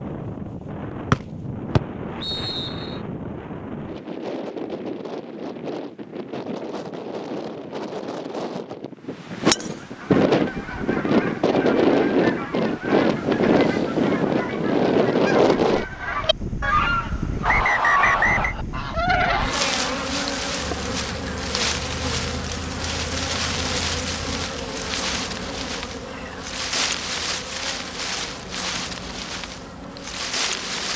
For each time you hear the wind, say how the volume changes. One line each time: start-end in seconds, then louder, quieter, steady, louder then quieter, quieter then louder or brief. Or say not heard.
0.0-30.9 louder then quieter.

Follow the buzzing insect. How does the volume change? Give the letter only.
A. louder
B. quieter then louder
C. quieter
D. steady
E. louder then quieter
C.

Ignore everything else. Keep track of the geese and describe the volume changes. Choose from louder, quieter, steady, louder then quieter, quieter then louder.
louder.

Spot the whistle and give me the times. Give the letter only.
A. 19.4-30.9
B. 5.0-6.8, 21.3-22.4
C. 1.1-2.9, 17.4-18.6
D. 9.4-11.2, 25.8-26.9
C.